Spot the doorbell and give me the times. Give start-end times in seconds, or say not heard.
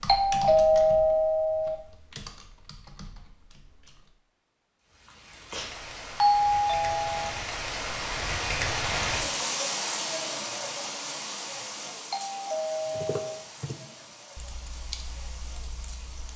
0.1-1.8, 6.2-7.3, 12.1-13.4.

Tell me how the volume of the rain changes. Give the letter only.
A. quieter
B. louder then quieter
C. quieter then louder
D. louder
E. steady
B.